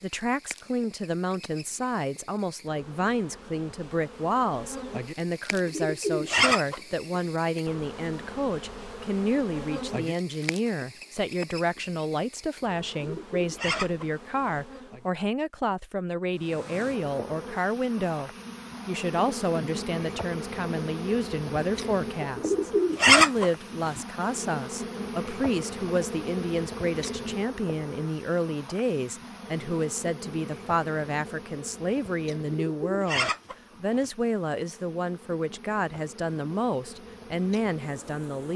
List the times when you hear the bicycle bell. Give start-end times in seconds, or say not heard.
not heard.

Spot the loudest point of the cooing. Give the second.
23 s.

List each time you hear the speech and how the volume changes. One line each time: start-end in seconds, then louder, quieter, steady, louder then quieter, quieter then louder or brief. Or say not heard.
0.0-38.5 steady.